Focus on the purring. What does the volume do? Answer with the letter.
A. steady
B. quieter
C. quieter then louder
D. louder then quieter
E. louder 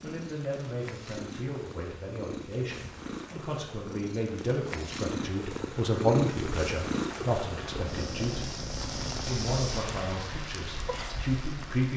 D.